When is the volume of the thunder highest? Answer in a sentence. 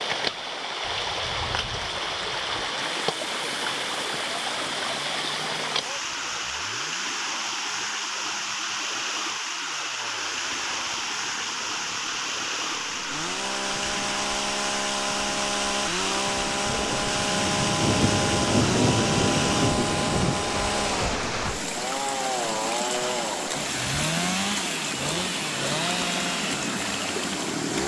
The loudest moment of the thunder is at 19 seconds.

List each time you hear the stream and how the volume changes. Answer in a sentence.
The stream can be heard from 0.0 to 27.8 s, at a steady volume.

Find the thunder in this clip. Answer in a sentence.
You can hear the thunder from 0.8 to 2.7 s and from 16.9 to 20.4 s.